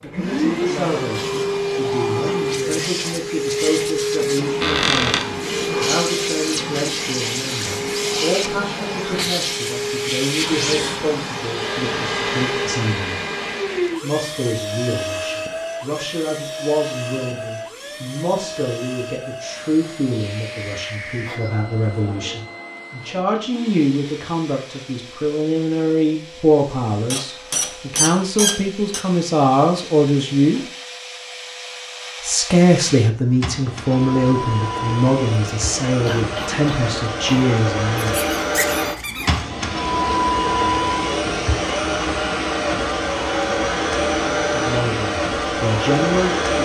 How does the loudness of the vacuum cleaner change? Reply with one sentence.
The loudness of the vacuum cleaner goes down, then up.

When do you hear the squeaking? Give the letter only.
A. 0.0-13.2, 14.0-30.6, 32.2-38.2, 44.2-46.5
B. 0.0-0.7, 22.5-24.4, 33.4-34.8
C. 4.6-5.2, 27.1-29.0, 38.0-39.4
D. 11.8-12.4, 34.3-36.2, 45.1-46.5
C.